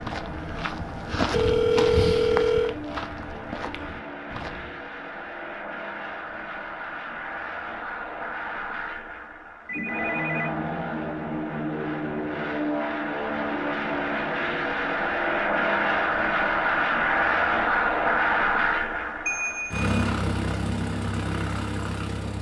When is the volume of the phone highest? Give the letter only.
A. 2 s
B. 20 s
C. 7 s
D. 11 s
A.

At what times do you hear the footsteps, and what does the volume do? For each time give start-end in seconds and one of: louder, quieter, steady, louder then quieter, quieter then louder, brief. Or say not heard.
0.0-4.8 louder then quieter.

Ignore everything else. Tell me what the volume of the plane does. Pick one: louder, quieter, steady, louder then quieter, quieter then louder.
louder.